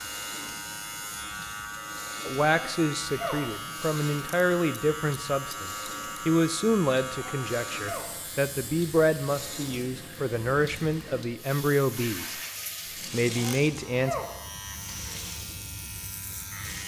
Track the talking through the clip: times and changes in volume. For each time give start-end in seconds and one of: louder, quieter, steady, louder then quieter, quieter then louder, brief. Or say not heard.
2.2-12.3 steady
13.1-14.2 brief.